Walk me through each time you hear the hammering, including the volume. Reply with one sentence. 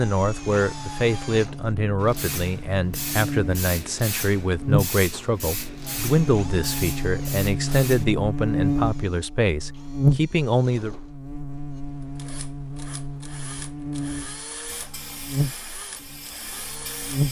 The hammering can't be heard in this clip.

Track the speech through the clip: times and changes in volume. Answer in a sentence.
The speech can be heard from 0.0 to 10.9 s, at a steady volume.